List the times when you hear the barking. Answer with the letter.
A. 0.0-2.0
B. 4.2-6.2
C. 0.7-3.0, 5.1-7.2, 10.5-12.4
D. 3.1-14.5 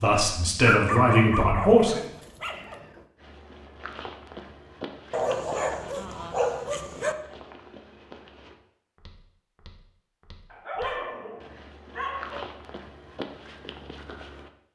C.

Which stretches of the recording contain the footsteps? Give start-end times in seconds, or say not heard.
3.1-14.5.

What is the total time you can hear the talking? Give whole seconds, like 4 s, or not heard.
2 s.